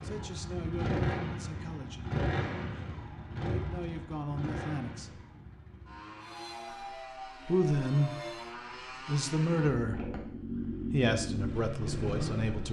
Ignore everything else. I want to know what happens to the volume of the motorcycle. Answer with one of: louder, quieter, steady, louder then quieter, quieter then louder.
quieter then louder.